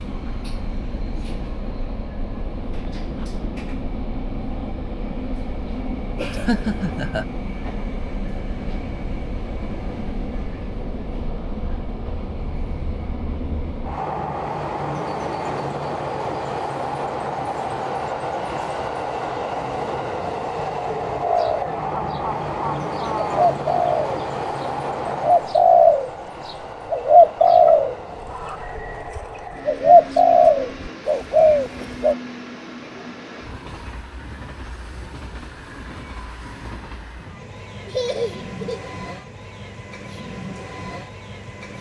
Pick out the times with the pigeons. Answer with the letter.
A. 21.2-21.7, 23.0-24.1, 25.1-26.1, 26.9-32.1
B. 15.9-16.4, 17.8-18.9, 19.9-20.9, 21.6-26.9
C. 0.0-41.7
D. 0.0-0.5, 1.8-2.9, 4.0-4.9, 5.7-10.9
A.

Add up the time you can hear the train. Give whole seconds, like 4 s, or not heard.
42 s.